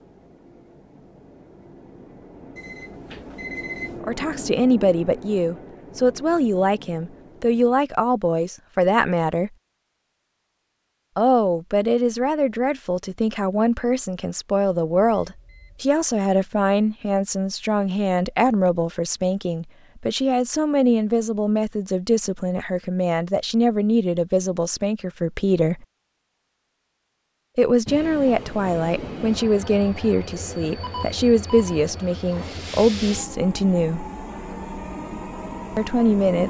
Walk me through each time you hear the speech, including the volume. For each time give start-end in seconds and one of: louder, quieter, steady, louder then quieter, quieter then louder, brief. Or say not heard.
4.0-9.5 steady
11.2-25.9 steady
27.6-34.0 steady
35.8-36.4 brief.